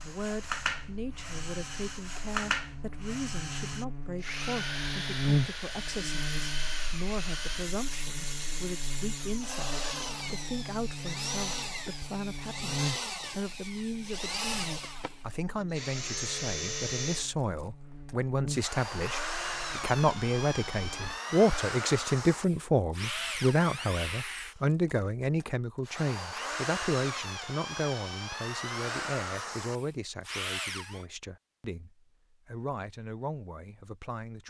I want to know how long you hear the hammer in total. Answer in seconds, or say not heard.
not heard.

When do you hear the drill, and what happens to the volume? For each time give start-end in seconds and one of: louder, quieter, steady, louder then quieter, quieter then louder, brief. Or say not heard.
0.0-31.1 steady.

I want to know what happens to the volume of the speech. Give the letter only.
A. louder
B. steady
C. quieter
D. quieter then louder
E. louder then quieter
E.